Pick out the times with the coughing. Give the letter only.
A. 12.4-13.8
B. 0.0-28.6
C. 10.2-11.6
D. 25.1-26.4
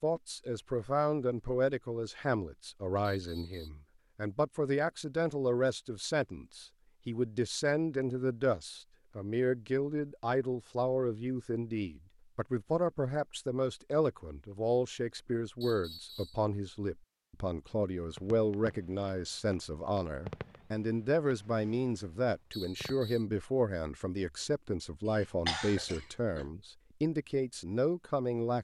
D.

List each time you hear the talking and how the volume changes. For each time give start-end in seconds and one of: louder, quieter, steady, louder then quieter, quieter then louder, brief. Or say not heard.
0.0-28.6 steady.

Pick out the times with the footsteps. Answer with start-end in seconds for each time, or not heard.
not heard.